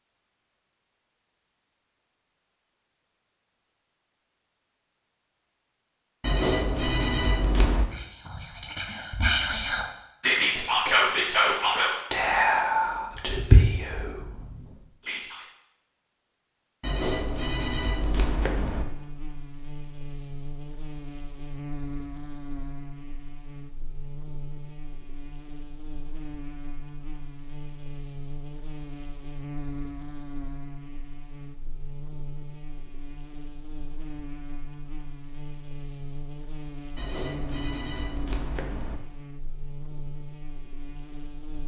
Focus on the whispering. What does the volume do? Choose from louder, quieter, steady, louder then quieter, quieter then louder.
louder then quieter.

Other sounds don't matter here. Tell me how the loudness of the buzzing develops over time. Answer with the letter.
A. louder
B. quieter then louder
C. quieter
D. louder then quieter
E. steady
E.